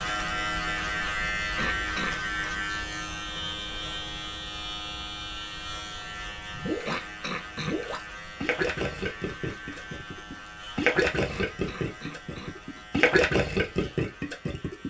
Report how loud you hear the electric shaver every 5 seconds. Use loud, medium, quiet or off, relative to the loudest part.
loud, medium, quiet.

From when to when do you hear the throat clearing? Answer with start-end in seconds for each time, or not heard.
1.6-2.2, 6.8-8.0, 11.2-12.8.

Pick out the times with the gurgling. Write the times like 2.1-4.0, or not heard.
6.5-14.8.